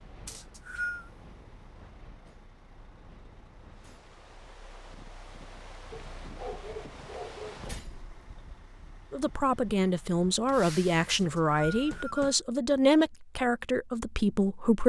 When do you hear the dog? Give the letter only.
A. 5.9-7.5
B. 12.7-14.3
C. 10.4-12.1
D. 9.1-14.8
A.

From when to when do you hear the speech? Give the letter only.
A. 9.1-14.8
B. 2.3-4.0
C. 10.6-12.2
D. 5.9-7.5
A.